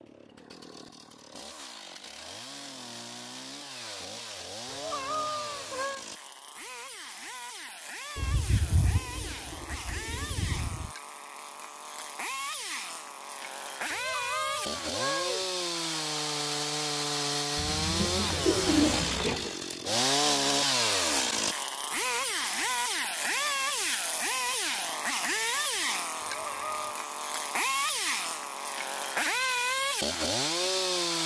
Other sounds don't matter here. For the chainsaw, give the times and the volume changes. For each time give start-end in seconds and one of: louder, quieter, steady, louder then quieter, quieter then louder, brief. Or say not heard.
0.0-31.2 louder.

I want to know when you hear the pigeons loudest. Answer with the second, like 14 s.
19 s.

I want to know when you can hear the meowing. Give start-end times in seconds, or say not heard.
4.7-6.0, 13.9-15.4, 26.2-26.9.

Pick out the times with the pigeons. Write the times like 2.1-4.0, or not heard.
8.2-10.9, 17.6-19.6.